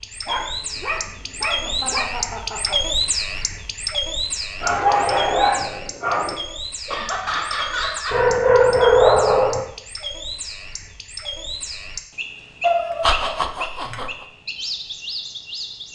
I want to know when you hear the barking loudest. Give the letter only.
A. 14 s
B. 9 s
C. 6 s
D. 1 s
B.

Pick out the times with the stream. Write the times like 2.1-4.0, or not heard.
not heard.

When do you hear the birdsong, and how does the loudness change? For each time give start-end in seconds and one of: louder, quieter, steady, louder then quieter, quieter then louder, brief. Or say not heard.
0.0-15.9 quieter.